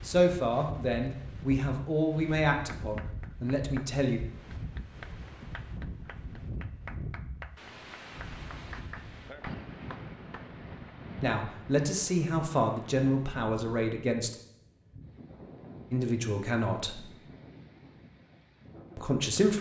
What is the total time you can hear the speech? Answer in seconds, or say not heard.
9 s.